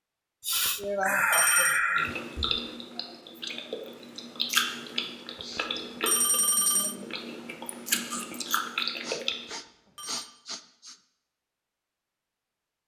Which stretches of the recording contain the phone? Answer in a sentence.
You can hear the phone from 0.7 to 1.8 s, from 5.3 to 7.0 s and from 9.3 to 10.3 s.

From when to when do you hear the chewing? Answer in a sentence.
You can hear the chewing from 1.9 to 9.6 s.